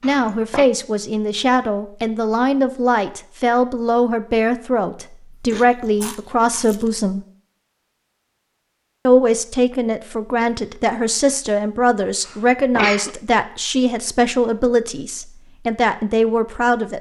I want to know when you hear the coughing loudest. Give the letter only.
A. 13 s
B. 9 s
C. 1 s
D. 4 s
A.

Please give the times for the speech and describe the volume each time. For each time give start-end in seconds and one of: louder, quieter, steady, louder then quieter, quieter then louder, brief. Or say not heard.
0.0-7.2 steady
9.1-16.9 steady.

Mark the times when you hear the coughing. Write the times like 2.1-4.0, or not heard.
0.0-0.7, 12.2-13.1.